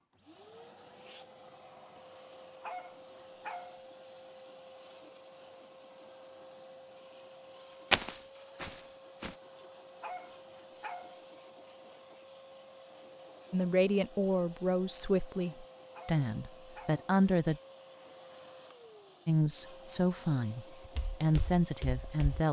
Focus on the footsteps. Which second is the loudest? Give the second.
8 s.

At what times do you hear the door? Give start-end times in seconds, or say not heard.
not heard.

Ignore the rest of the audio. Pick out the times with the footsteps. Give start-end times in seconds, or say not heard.
7.9-9.3, 20.9-22.4.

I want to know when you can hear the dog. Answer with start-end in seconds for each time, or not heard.
2.6-3.8, 10.0-11.2, 15.9-17.1.